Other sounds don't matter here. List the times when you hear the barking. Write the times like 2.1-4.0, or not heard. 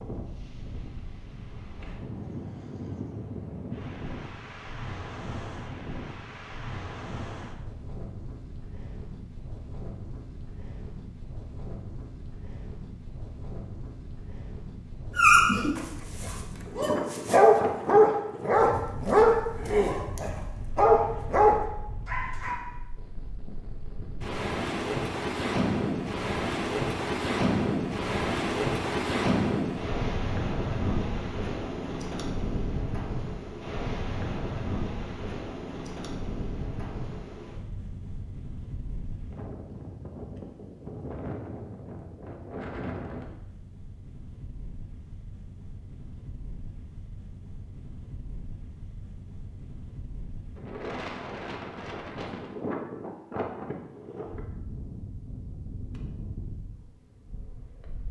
15.2-22.6.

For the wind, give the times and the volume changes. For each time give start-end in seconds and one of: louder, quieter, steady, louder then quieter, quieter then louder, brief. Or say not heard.
0.0-58.0 louder then quieter.